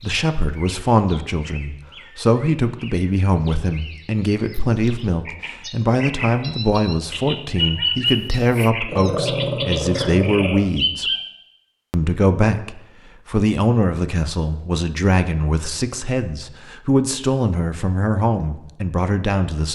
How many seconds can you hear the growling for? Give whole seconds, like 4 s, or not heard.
2 s.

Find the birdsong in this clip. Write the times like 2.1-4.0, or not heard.
0.0-11.2.